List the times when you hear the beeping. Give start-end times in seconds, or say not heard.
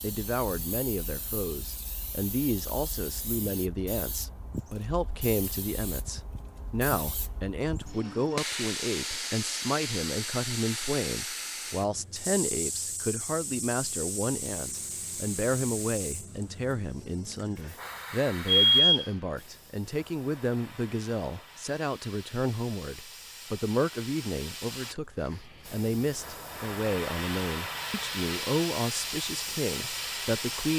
18.4-19.1.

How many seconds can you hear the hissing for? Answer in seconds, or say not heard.
31 s.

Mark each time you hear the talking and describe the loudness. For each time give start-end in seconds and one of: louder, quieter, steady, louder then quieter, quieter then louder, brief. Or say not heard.
0.0-30.7 steady.